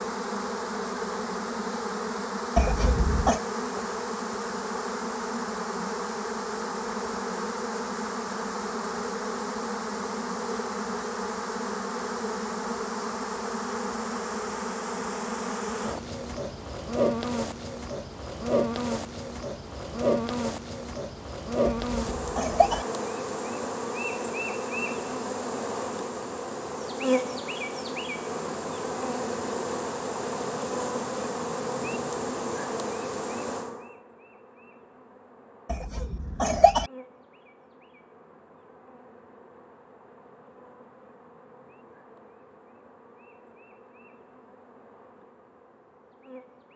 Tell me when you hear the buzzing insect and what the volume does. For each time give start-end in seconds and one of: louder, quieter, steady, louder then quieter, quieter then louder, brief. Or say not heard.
0.0-46.7 quieter.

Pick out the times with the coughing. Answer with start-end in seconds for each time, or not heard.
2.5-3.4, 21.6-22.9, 35.7-36.9.